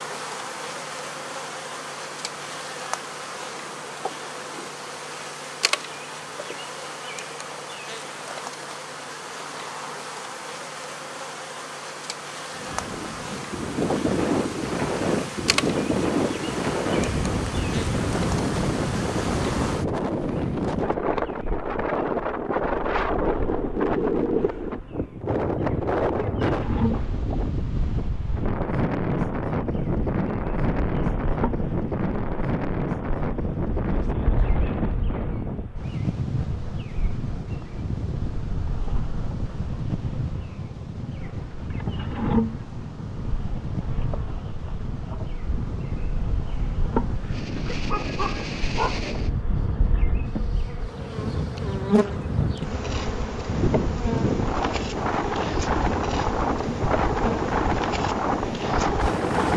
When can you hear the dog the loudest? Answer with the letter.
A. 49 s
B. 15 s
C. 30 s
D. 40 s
A.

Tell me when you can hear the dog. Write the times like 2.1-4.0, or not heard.
47.2-49.0.